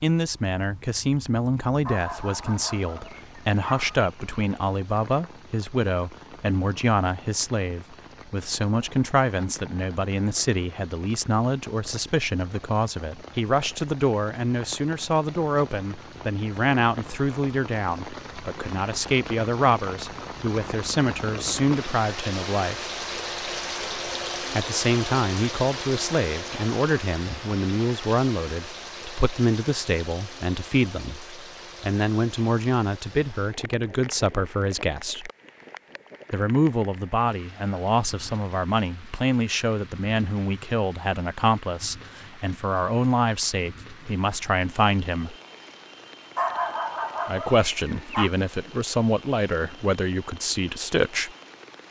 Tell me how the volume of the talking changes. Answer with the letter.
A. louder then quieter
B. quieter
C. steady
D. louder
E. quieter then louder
C.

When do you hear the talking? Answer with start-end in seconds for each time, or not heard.
0.0-22.9, 24.5-35.3, 36.3-45.4, 47.2-51.3.